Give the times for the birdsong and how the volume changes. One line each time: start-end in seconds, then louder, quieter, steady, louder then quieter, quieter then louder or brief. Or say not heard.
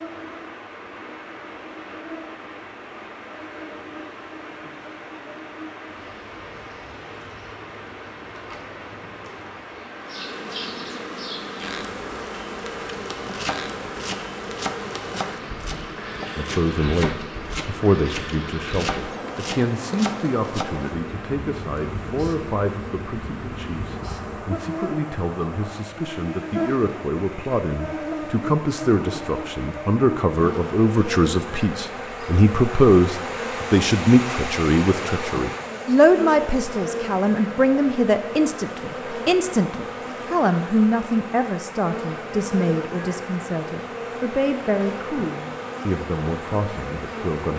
not heard.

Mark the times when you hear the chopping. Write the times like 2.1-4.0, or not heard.
12.8-20.6.